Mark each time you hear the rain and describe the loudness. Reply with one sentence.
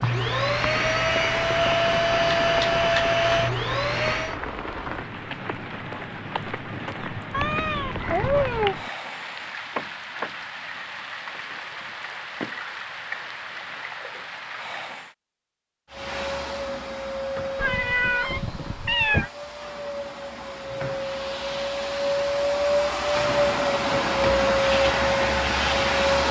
The rain can be heard from 0.0 to 15.2 s, at a steady volume.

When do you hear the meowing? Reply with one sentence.
The meowing can be heard from 7.3 to 8.8 s and from 17.6 to 19.3 s.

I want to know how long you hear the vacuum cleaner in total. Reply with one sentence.
The vacuum cleaner can be heard for 15 seconds in total.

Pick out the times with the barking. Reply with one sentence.
The barking can't be heard in this clip.